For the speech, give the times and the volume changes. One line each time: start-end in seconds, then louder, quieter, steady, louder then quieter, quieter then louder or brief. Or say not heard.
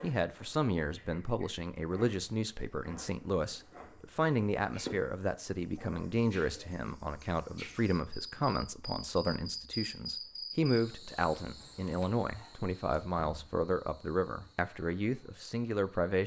0.0-16.2 steady.